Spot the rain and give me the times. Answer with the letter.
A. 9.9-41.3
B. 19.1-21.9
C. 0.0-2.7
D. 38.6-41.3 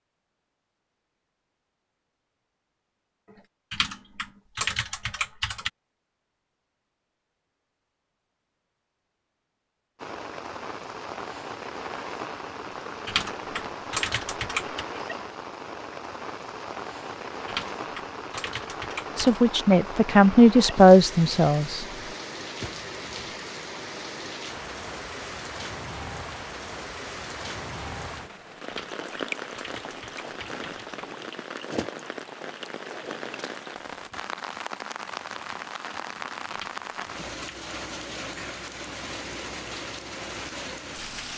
A.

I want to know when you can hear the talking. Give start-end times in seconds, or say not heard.
19.1-21.9.